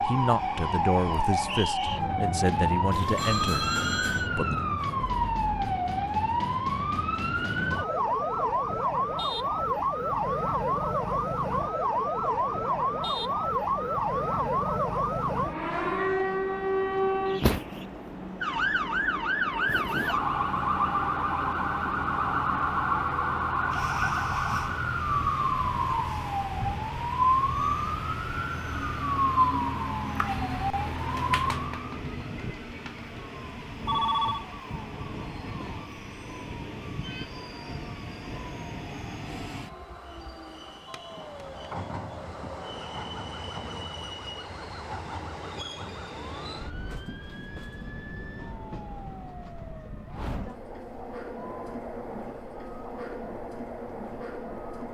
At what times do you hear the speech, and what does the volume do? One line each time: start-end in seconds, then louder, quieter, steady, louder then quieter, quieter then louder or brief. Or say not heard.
0.0-4.5 quieter.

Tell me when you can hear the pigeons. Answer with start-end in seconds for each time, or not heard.
not heard.